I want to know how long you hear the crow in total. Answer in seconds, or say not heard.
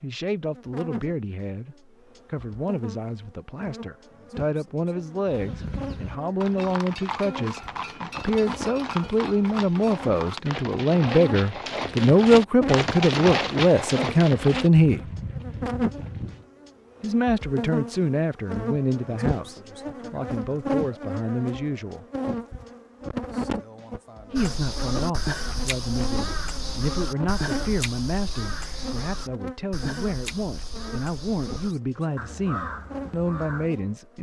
9 s.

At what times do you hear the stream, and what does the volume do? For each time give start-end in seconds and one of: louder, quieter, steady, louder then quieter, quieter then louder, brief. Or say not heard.
not heard.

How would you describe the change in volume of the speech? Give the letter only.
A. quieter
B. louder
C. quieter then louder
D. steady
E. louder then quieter
E.